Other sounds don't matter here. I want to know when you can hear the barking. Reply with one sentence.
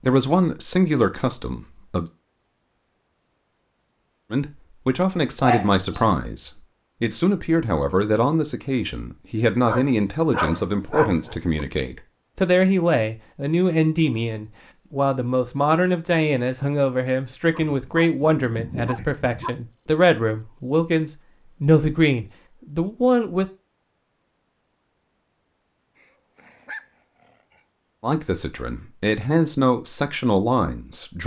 The barking can be heard from 5.4 to 6.2 s, from 9.7 to 11.4 s, from 17.5 to 19.5 s and from 25.9 to 27.6 s.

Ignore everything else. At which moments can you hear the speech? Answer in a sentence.
You can hear the speech from 0.0 to 2.1 s, from 4.3 to 23.4 s and from 28.0 to 31.2 s.